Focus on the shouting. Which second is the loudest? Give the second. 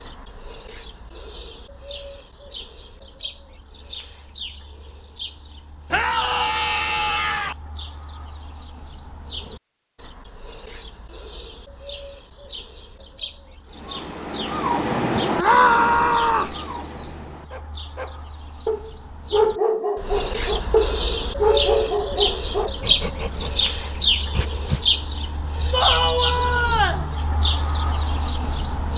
16 s.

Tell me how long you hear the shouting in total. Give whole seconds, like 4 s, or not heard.
4 s.